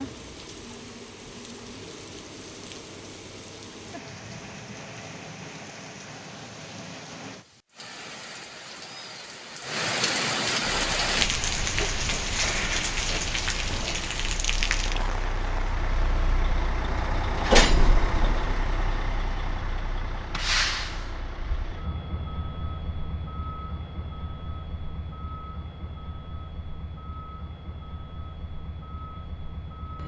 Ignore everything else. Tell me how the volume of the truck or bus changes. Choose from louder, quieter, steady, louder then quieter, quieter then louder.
louder then quieter.